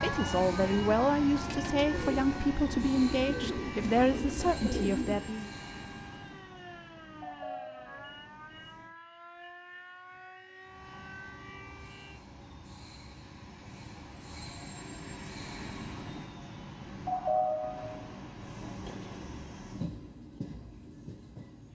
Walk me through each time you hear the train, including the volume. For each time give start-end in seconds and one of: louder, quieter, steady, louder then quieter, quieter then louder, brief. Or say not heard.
0.0-8.9 quieter
10.7-21.6 louder then quieter.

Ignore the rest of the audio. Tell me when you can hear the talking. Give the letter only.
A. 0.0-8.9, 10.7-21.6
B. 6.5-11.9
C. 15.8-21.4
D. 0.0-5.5
D.